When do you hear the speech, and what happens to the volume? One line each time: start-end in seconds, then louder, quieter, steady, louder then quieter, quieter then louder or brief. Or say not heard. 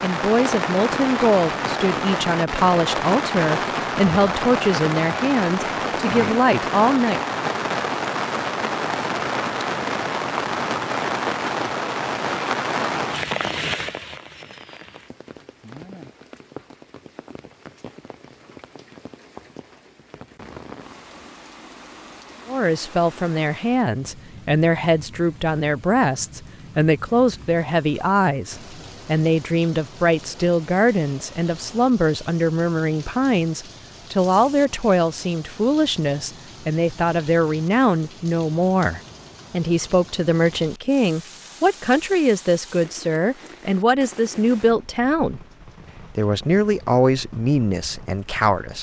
0.0-7.2 steady
22.4-45.4 steady
46.1-48.7 brief.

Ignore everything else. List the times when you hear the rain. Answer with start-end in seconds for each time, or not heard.
0.0-48.7.